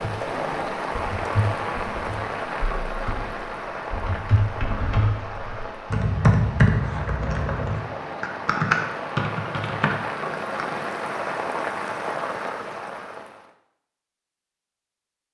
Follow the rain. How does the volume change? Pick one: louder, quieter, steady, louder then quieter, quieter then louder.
quieter then louder.